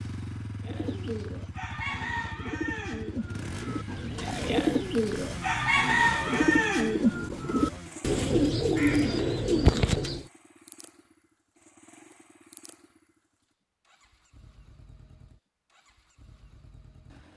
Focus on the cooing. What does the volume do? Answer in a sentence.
The volume of the cooing goes up.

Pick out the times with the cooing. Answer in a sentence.
The cooing can be heard from 0.6 to 10.2 s.